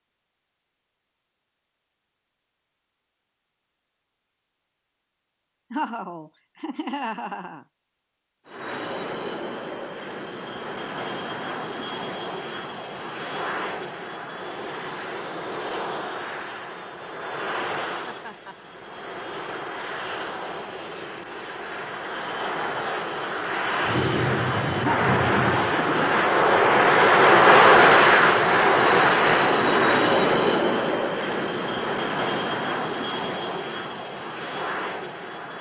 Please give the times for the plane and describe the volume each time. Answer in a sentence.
The plane can be heard from 8.4 to 35.5 s, getting louder then quieter.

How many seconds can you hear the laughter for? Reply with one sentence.
The laughter can be heard for 4 seconds in total.